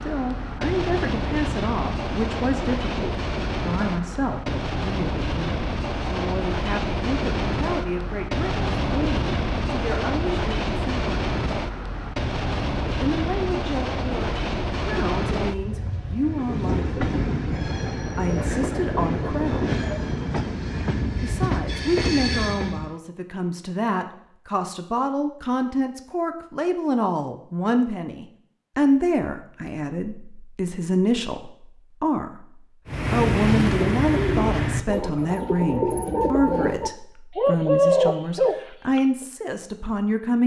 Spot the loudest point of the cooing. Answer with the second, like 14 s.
38 s.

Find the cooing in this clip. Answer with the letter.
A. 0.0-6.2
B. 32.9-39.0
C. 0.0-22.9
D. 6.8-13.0
B.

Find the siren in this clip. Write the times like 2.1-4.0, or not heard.
not heard.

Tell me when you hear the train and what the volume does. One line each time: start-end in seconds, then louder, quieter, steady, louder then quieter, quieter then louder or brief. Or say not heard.
0.0-22.9 steady.